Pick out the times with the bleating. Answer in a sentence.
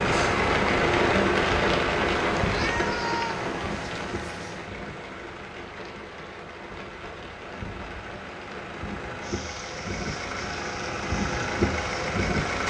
You can't hear the bleating here.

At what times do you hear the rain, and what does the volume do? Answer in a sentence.
The rain can be heard from 0.0 to 12.6 s, getting quieter.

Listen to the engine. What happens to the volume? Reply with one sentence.
The loudness of the engine goes down, then up.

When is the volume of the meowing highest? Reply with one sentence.
The loudest moment of the meowing is at 3 seconds.